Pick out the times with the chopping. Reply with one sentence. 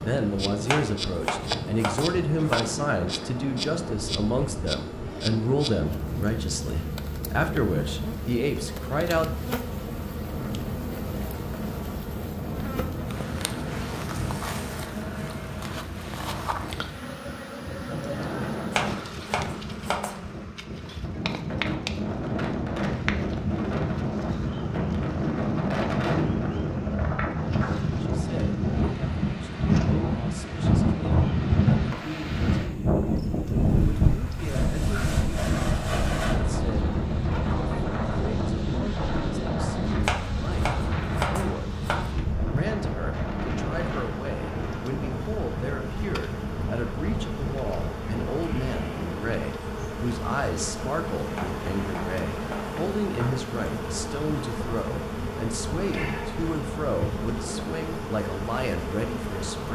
You can hear the chopping from 0.7 to 2.8 s, from 18.7 to 20.2 s, from 40.0 to 42.1 s and from 51.3 to 53.4 s.